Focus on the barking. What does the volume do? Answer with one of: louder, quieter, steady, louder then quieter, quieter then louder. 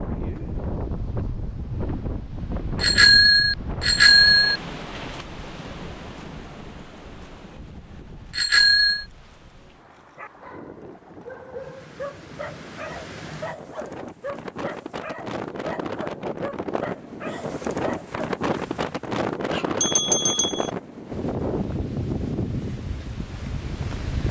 steady.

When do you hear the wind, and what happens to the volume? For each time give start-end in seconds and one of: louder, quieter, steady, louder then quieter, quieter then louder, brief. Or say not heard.
0.0-24.2 quieter then louder.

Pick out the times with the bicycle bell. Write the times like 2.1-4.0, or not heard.
2.8-4.6, 8.3-9.1, 19.8-20.7.